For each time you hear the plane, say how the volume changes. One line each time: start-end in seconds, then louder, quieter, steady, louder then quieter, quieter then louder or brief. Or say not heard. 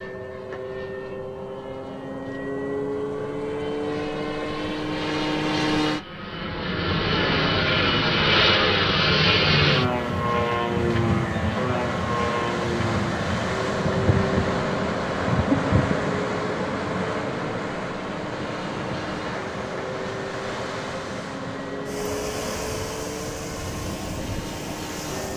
0.0-25.3 louder then quieter.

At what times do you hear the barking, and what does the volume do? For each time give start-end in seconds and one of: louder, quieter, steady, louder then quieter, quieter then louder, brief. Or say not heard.
not heard.